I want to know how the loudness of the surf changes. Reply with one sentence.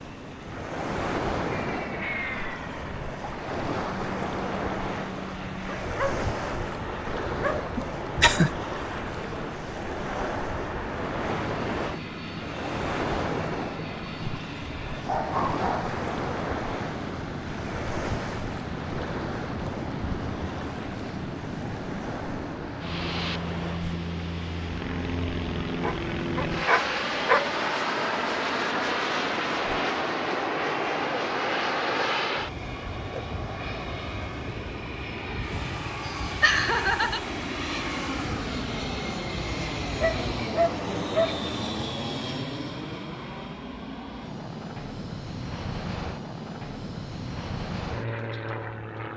The loudness of the surf goes down.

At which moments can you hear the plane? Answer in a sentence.
The plane can be heard from 0.0 to 49.1 s.